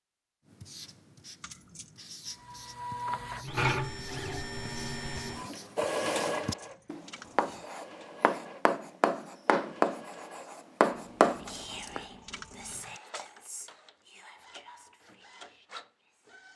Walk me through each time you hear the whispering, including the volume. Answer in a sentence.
You can hear the whispering from 11.3 to 16.4 s, getting quieter.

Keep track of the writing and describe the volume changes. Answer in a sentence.
The volume of the writing goes up.